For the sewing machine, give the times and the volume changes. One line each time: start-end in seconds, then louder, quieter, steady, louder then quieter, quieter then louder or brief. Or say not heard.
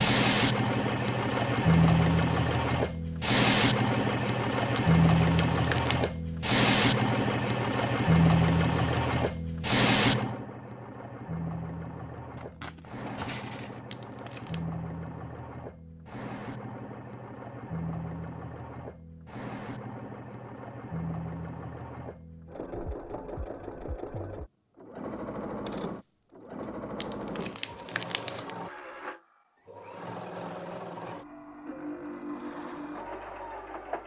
0.0-34.0 quieter.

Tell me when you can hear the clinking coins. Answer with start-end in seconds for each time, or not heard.
12.3-13.8, 25.6-26.6.